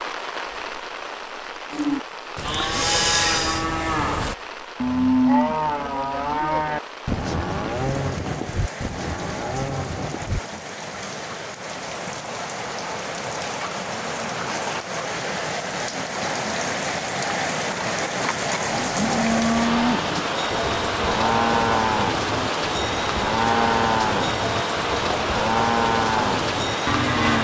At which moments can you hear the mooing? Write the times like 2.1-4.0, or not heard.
1.7-10.7, 18.7-27.3.